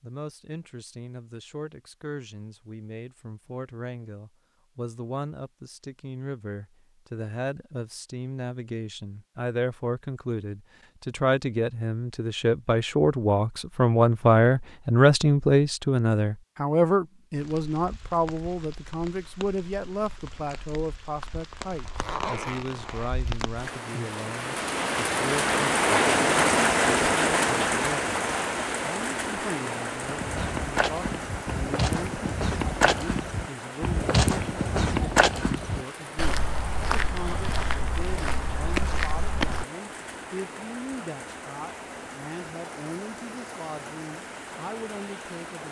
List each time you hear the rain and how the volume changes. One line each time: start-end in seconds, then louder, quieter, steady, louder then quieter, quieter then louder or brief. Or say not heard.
17.4-45.6 louder then quieter.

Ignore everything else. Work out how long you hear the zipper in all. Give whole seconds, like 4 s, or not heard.
2 s.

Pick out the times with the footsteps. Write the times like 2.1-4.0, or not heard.
30.1-39.6.